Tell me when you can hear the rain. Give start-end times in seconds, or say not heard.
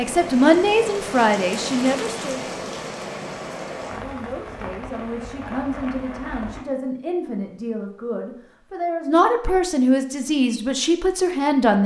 0.0-6.6.